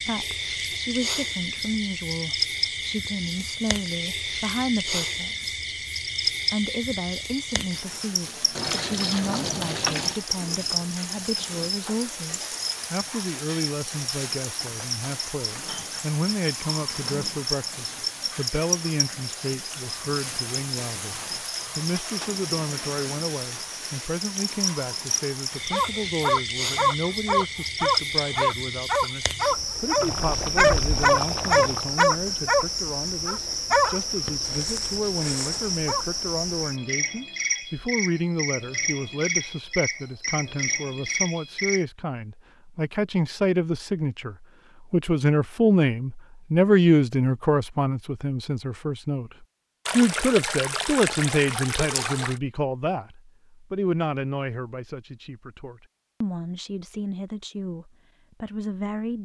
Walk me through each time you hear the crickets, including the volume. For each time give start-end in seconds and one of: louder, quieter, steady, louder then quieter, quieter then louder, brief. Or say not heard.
0.0-41.9 steady.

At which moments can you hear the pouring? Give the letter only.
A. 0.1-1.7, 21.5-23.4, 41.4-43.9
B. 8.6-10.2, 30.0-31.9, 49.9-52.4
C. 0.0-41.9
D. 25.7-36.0
B.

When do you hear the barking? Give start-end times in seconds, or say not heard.
25.7-36.0.